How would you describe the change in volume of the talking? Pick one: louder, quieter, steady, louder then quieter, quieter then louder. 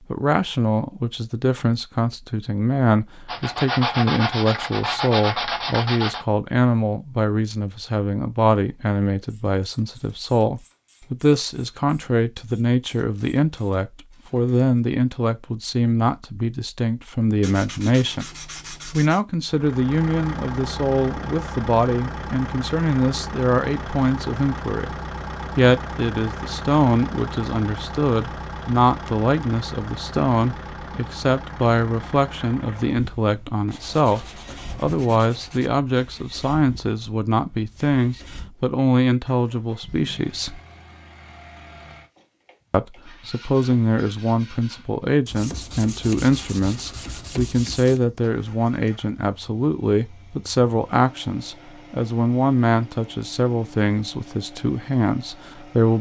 steady.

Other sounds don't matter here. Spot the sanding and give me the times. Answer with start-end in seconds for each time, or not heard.
3.2-6.2, 17.4-19.2, 33.6-35.7, 45.2-48.0.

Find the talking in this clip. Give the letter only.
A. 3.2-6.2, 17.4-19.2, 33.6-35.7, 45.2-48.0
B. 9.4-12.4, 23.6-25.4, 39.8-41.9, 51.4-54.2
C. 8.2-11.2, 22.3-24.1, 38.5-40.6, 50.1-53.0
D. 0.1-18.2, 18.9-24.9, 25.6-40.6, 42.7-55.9
D.